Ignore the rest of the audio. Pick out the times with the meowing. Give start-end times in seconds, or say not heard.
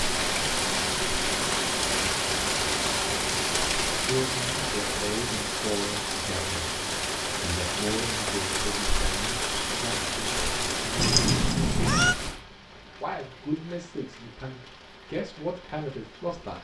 10.9-12.2.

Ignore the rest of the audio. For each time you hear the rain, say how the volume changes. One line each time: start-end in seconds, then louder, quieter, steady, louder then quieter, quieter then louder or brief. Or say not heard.
0.0-16.5 quieter.